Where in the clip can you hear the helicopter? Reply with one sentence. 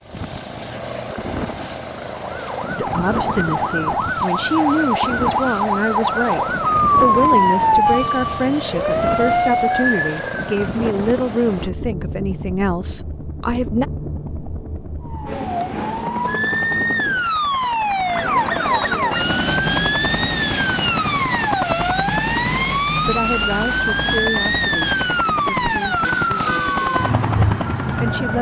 You can hear the helicopter from 0.0 to 28.3 s.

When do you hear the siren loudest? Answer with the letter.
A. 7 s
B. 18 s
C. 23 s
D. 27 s
A.